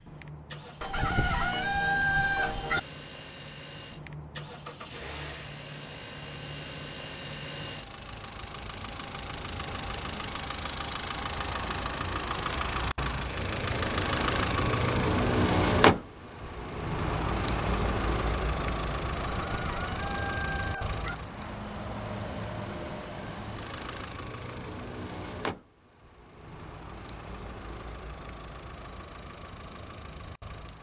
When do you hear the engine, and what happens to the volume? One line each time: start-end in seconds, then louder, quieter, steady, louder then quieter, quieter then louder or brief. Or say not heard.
0.0-30.7 louder then quieter.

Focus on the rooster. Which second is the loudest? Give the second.
2 s.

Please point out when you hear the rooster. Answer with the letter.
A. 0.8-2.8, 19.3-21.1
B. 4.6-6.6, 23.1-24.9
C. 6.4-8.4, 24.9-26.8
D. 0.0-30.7
A.